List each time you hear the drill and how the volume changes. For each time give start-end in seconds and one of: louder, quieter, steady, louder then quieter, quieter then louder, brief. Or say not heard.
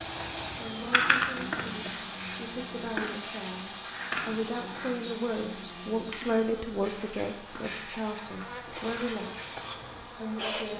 0.0-10.7 quieter.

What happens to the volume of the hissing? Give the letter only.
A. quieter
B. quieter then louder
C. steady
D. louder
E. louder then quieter
A.